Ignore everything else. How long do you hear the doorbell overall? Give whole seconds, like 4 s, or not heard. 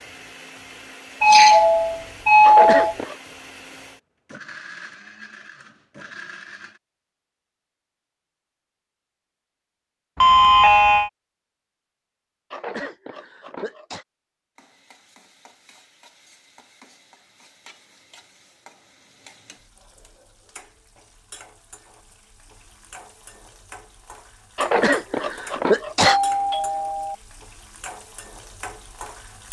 4 s.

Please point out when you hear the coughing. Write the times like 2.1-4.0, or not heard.
2.4-3.1, 12.5-14.1, 24.6-26.2.